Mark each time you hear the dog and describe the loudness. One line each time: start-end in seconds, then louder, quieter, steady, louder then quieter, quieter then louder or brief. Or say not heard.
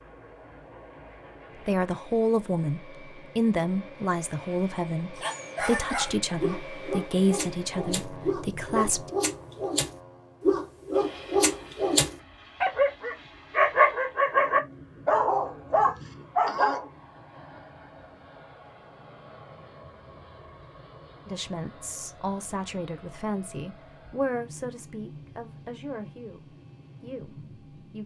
5.2-16.9 louder.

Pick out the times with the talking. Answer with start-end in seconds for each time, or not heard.
1.6-9.1, 21.2-28.0.